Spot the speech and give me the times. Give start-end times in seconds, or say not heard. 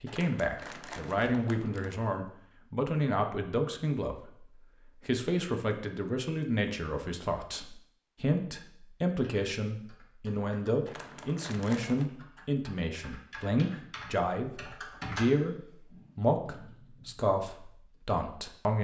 0.0-4.4, 5.0-18.7.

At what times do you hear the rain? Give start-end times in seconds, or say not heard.
not heard.